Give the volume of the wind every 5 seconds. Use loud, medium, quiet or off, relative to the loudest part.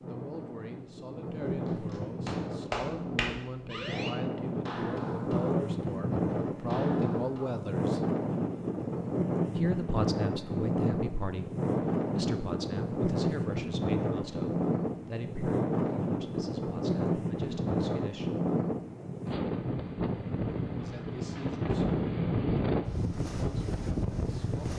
medium, loud, loud, loud, loud.